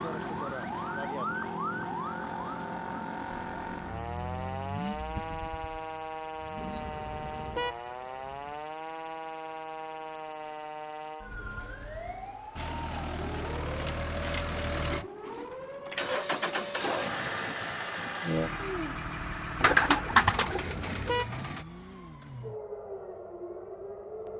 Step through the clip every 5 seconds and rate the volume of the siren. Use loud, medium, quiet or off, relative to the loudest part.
loud, loud, medium, medium, medium.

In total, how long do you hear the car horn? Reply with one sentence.
You can hear the car horn for 3 seconds altogether.